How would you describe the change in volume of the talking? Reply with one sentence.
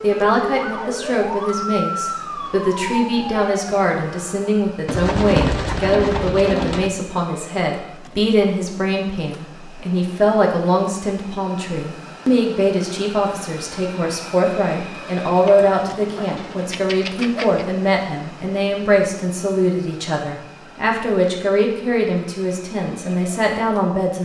The volume of the talking stays about the same.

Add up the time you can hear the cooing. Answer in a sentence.
You can hear the cooing for 4 seconds altogether.